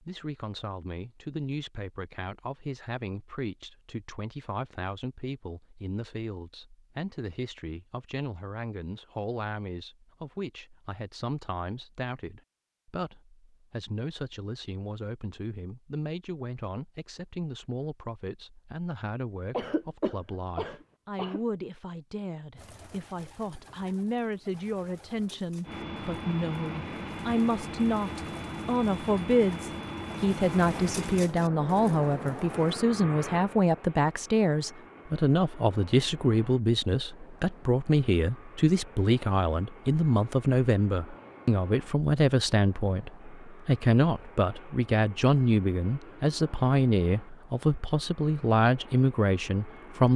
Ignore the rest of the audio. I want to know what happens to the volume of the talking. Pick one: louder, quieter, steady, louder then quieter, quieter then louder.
louder.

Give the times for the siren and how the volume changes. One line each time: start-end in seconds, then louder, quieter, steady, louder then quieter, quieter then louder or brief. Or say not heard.
not heard.